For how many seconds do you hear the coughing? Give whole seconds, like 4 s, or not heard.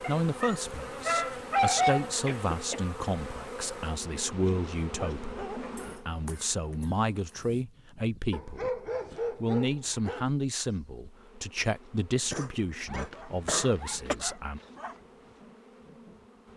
4 s.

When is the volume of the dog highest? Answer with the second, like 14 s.
2 s.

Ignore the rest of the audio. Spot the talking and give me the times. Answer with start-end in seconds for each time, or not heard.
0.1-14.6.